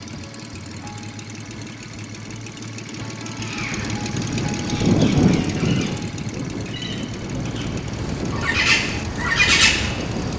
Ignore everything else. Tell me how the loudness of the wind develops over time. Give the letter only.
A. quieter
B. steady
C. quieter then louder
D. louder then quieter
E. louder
A.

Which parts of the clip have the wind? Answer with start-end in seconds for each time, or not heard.
4.0-10.3.